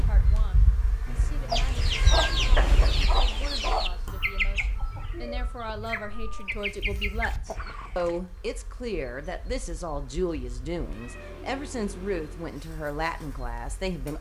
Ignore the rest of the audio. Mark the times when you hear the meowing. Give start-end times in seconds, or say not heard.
1.1-3.1, 5.9-6.6, 10.8-12.4.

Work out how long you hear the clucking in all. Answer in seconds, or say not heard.
7 s.